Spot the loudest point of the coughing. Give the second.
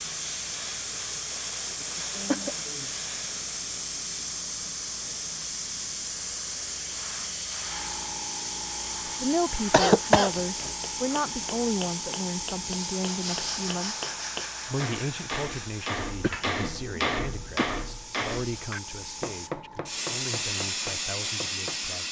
10 s.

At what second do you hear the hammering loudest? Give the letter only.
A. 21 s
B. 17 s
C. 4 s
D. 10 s
B.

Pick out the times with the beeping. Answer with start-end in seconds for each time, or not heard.
not heard.